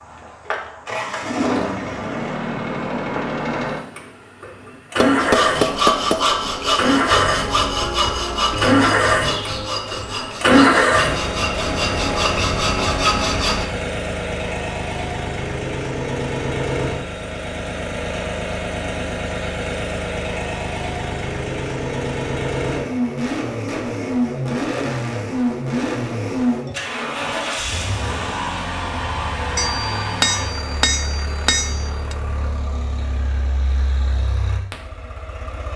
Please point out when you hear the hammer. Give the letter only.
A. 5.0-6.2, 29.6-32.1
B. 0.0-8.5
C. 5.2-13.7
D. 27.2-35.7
A.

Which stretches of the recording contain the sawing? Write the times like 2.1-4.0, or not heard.
5.2-13.7.